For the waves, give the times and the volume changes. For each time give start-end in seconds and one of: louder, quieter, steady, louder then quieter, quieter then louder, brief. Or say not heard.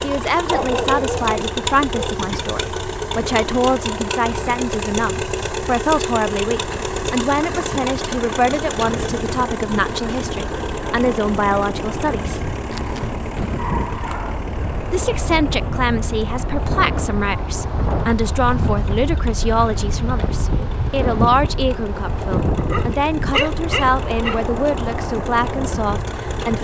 0.0-26.5 louder.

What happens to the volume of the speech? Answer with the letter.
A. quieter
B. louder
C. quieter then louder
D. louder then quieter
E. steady
E.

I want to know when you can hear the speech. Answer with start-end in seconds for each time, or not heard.
0.0-12.4, 14.9-26.5.